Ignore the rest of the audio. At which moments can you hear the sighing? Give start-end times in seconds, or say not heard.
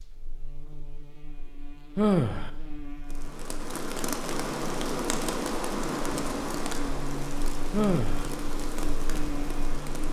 1.9-2.5, 7.7-8.2.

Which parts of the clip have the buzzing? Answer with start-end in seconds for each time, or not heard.
0.0-10.0.